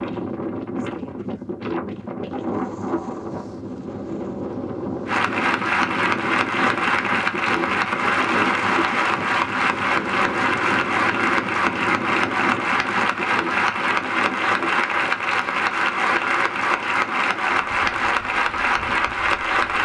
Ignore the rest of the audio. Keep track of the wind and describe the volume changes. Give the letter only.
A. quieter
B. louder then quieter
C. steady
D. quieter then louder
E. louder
A.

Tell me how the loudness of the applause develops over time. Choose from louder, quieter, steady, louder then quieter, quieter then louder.
steady.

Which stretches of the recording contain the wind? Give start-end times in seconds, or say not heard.
0.0-19.8.